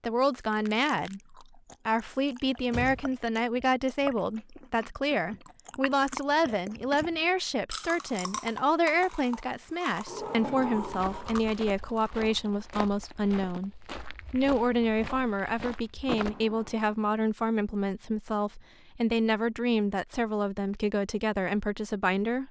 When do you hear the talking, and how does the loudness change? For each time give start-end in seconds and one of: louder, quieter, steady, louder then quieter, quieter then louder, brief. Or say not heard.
0.0-22.4 steady.